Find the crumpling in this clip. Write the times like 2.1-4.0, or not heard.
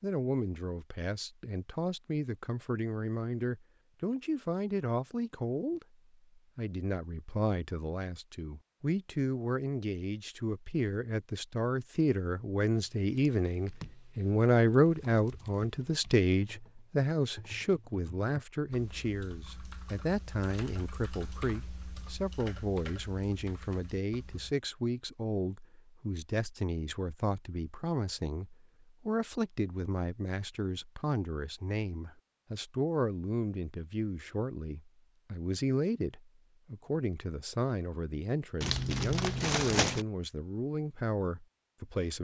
38.6-40.0.